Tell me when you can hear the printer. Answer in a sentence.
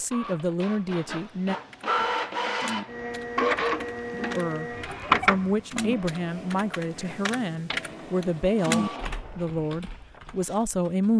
The printer can be heard from 0.0 to 11.1 s.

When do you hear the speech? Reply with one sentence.
You can hear the speech from 0.0 to 1.6 s and from 4.3 to 11.1 s.